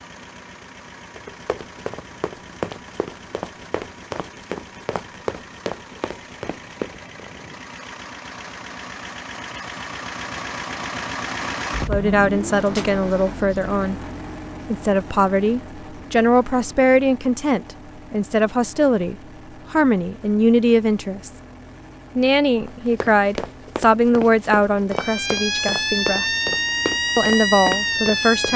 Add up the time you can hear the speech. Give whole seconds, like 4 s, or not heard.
14 s.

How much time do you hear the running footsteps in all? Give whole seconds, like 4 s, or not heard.
12 s.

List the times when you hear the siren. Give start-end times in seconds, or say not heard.
24.9-28.5.